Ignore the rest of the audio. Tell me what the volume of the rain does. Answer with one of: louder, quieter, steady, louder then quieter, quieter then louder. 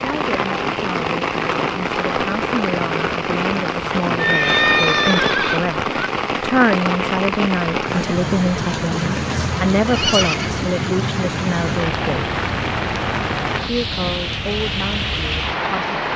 steady.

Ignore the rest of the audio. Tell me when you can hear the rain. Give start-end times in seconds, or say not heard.
0.0-16.1.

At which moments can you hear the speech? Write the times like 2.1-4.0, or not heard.
0.0-12.3, 13.7-15.9.